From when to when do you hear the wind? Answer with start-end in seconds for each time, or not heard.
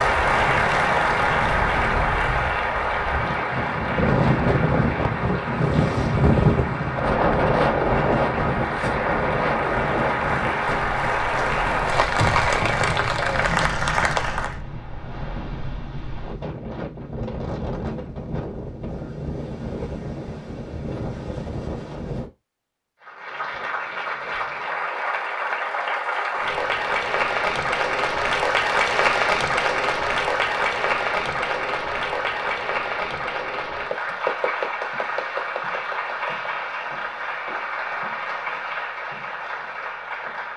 0.0-22.3.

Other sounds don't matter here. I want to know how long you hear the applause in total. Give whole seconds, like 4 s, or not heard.
32 s.